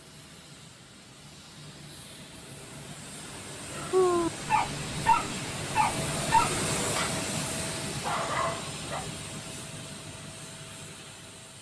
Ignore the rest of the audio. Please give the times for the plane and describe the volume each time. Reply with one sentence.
You can hear the plane from 0.0 to 11.5 s, getting louder then quieter.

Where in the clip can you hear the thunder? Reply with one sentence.
The thunder can't be heard in this clip.